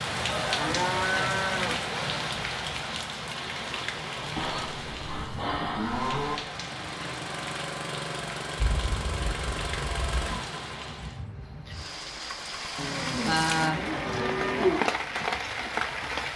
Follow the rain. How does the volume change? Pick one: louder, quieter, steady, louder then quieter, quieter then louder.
quieter then louder.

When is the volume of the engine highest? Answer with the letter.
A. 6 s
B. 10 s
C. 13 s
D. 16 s
B.